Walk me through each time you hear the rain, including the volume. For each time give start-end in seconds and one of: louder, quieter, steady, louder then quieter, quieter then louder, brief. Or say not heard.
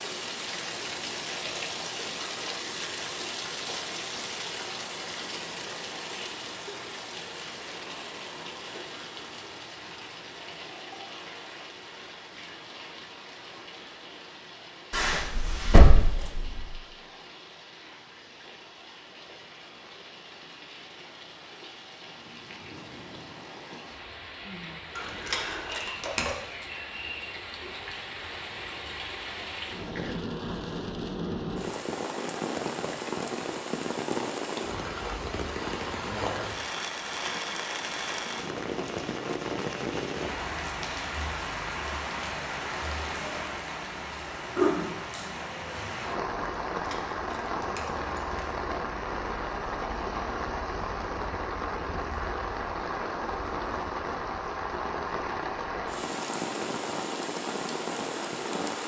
0.0-58.8 quieter then louder.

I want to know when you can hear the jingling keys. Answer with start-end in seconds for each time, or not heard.
14.9-16.6, 24.9-26.4, 46.8-48.4.